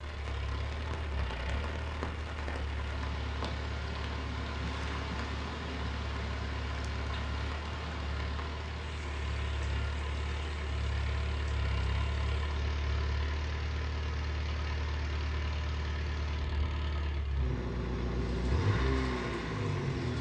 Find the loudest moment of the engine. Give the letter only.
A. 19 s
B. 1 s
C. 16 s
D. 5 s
A.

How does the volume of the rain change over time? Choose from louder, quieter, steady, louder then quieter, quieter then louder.
quieter.